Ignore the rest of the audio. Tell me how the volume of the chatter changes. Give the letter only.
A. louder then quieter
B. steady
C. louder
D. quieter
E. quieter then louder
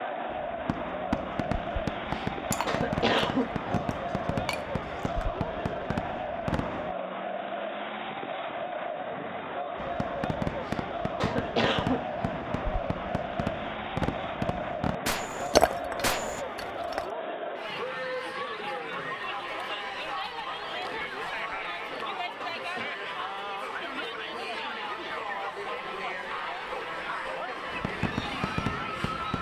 B.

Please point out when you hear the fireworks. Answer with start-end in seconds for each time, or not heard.
0.3-7.0, 9.8-16.4, 27.7-29.3.